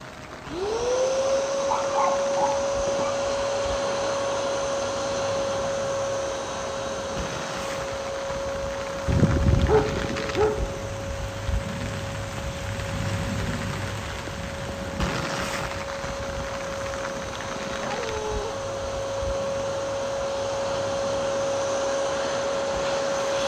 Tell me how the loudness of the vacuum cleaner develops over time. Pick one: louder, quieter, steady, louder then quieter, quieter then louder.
quieter then louder.